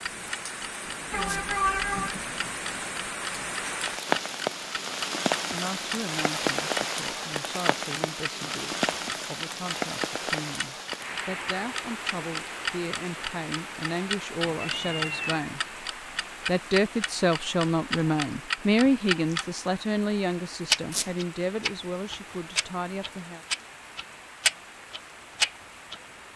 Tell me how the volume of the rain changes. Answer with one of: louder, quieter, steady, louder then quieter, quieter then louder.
quieter.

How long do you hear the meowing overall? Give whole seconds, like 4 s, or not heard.
2 s.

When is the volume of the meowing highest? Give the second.
2 s.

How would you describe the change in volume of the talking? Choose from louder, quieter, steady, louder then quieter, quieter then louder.
louder then quieter.